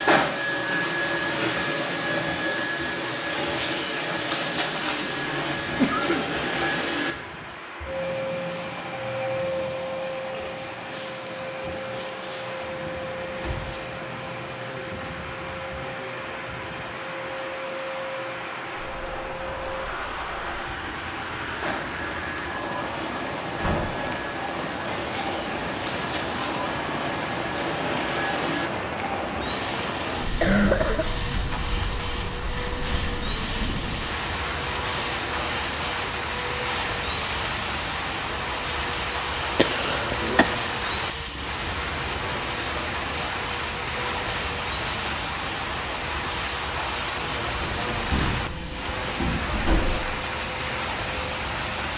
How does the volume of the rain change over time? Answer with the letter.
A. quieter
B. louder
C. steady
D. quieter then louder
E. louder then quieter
B.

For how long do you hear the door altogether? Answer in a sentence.
The door can be heard for 4 seconds in total.